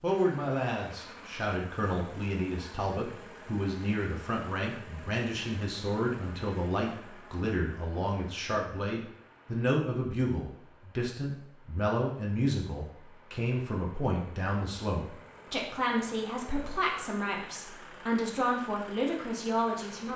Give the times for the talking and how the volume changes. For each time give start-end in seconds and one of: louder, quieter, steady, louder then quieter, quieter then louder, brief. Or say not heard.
0.0-20.1 steady.